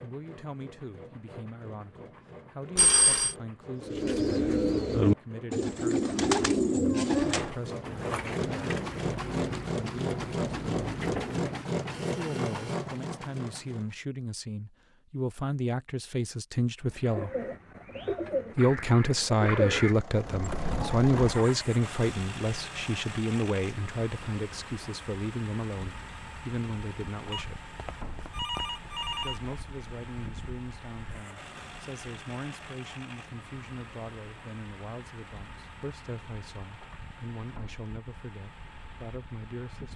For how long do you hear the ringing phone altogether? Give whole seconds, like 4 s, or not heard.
3 s.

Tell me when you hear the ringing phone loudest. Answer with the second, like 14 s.
3 s.